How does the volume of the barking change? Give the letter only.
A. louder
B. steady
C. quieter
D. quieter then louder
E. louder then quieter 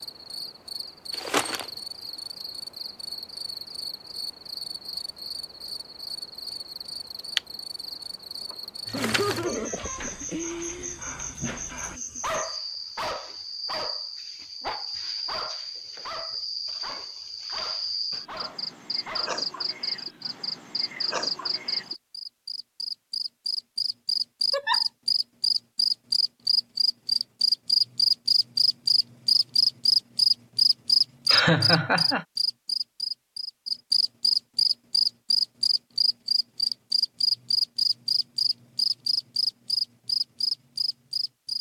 E.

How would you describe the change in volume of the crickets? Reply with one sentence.
The loudness of the crickets goes up.